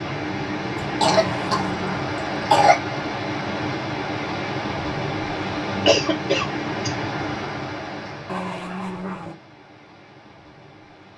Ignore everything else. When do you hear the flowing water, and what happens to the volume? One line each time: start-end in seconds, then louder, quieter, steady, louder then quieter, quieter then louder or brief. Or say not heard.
0.0-11.1 quieter.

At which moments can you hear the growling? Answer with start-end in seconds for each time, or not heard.
1.1-1.9, 8.2-9.3.